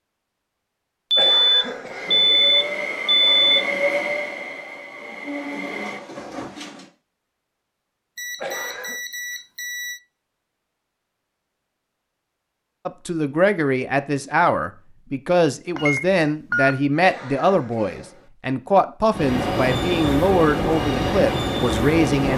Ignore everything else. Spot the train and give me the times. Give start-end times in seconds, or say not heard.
1.9-6.9, 19.1-22.3.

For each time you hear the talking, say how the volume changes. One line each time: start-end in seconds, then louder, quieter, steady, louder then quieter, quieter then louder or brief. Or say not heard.
12.8-22.3 steady.